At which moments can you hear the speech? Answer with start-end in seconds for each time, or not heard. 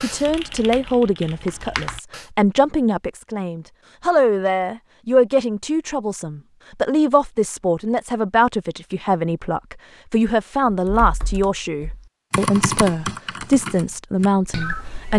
0.0-15.1.